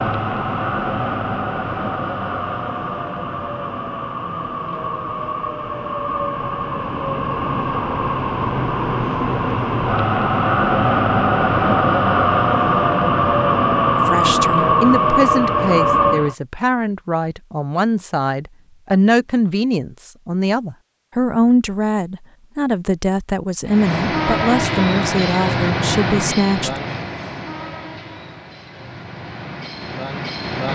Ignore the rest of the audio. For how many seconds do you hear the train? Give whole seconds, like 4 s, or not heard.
23 s.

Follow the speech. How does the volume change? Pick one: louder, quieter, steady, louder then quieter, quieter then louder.
steady.